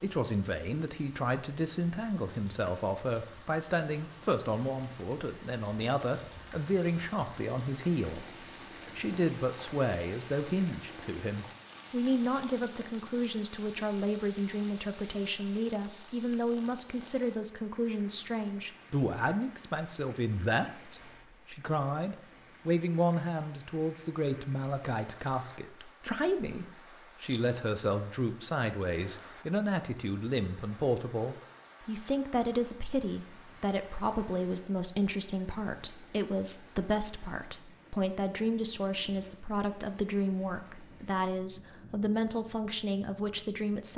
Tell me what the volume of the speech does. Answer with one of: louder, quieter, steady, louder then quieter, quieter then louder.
steady.